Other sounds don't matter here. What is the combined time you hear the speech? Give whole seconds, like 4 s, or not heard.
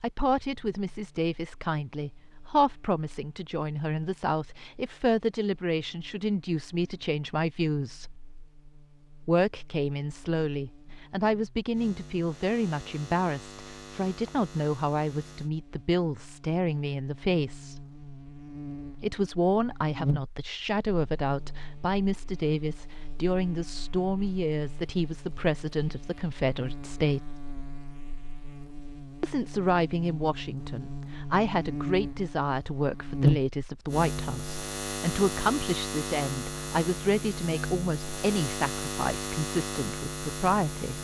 37 s.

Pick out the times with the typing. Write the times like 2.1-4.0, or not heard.
not heard.